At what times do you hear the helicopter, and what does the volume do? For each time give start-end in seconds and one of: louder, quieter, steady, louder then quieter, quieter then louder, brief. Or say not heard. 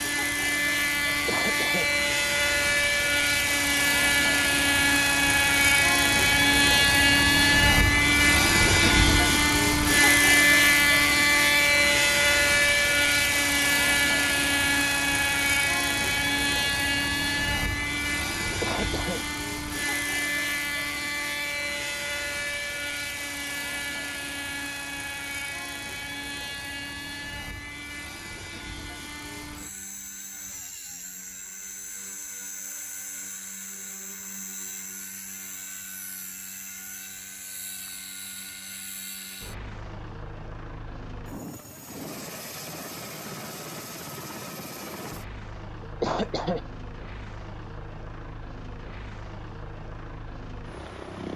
0.0-51.3 quieter.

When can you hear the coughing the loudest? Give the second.
46 s.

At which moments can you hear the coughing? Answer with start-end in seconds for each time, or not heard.
1.1-1.9, 18.4-19.2, 45.8-46.6.